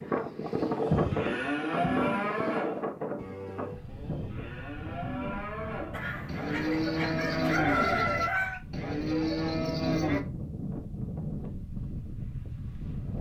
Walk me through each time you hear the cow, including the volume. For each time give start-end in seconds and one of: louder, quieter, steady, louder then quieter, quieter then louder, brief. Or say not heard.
0.6-10.2 quieter then louder.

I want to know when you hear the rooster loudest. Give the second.
8 s.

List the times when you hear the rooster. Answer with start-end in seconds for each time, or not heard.
5.9-8.6.